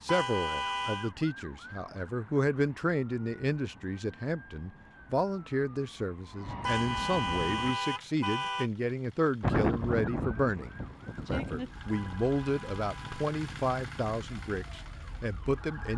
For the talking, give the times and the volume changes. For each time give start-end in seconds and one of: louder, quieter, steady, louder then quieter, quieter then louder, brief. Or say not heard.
0.0-15.9 steady.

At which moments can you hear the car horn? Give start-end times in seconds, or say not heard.
0.1-1.1, 6.6-8.7, 11.9-13.3.